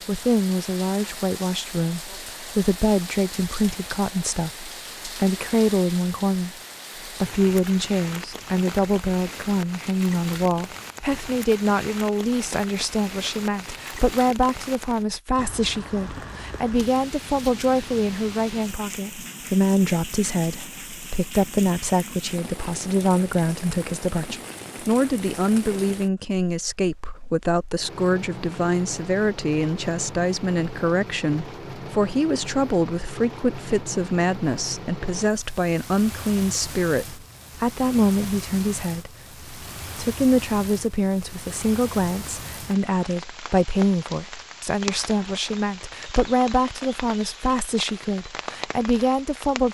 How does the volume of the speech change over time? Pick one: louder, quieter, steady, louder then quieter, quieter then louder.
steady.